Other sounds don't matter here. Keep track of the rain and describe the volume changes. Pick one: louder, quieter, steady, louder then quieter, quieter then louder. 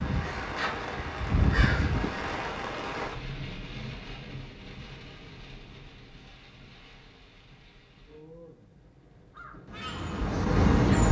quieter.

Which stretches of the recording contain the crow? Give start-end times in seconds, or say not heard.
0.0-2.8, 9.3-11.0.